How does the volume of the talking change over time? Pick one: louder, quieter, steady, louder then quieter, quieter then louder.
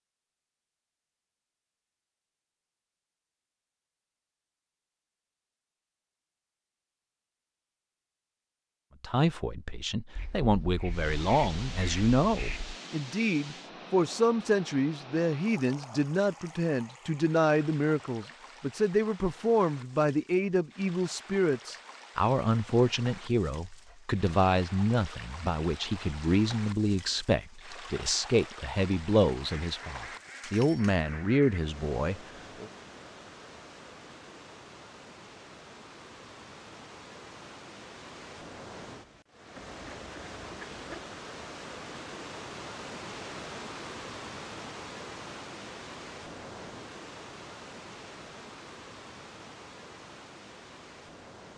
steady.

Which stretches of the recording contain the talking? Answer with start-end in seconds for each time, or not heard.
9.0-32.6.